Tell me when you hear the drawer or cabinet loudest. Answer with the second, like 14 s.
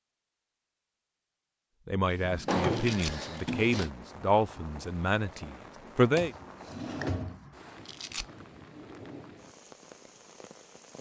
3 s.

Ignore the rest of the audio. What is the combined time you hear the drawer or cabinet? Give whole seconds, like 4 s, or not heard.
3 s.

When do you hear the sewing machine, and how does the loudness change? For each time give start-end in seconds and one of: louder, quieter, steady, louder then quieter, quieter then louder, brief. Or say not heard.
not heard.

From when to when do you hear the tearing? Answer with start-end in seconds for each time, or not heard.
2.7-3.1, 7.8-8.2.